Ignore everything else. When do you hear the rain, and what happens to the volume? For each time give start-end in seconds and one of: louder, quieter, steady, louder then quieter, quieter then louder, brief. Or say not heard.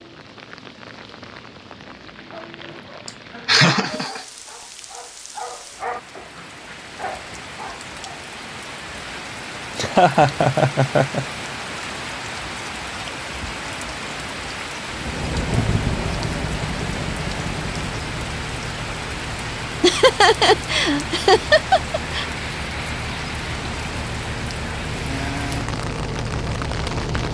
0.0-27.2 louder.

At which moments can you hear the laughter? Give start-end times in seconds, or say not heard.
3.0-4.2, 9.8-11.2, 19.8-22.2.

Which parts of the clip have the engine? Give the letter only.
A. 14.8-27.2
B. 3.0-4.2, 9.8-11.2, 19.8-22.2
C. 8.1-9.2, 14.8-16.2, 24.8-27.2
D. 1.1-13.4
A.